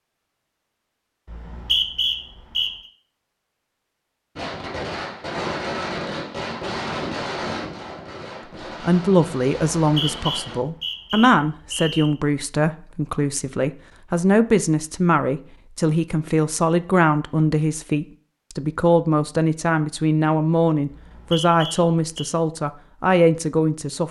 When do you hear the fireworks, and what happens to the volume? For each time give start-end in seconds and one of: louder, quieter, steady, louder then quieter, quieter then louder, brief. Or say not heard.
4.3-10.6 quieter.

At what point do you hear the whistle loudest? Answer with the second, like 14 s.
2 s.